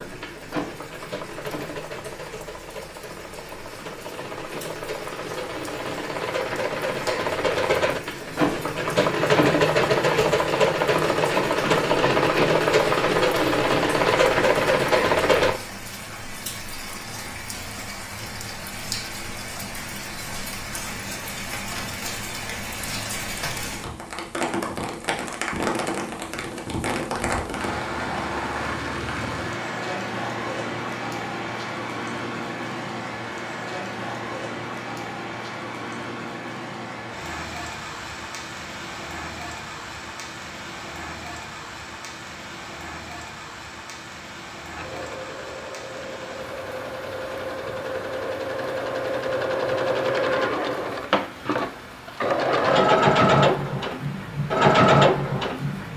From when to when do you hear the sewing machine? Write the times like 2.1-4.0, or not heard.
0.0-15.6, 44.7-55.9.